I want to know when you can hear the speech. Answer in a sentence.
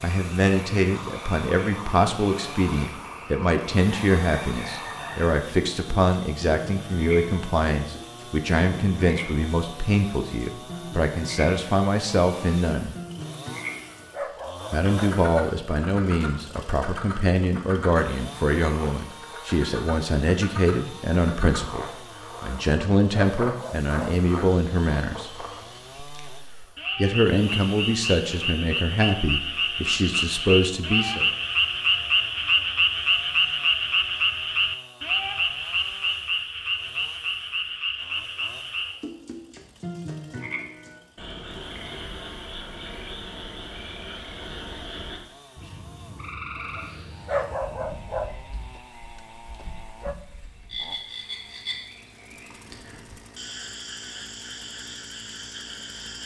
You can hear the speech from 0.0 to 12.9 s, from 14.7 to 25.4 s and from 26.9 to 31.2 s.